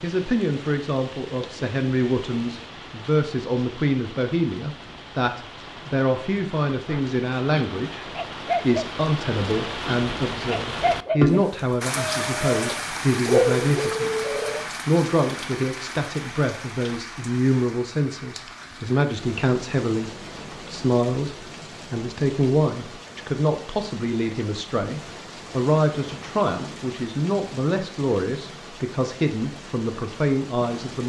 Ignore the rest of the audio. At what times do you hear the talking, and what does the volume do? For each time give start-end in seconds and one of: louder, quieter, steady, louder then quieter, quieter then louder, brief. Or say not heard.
0.0-31.0 steady.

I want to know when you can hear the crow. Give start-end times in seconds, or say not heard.
not heard.